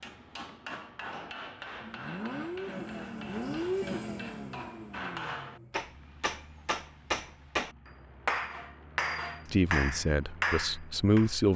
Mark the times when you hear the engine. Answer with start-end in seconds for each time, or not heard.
0.1-11.5.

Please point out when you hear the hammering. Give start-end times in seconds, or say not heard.
0.0-11.3.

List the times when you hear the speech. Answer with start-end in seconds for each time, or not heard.
9.5-11.5.